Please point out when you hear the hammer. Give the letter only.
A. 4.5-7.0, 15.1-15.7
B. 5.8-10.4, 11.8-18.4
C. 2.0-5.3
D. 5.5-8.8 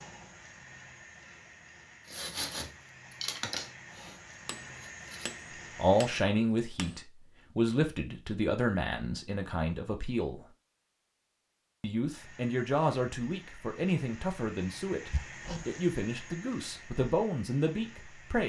A.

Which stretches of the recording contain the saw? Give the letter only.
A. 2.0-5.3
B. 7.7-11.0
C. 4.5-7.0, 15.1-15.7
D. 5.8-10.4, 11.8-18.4
A.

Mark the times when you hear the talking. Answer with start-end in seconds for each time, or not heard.
5.8-10.4, 11.8-18.4.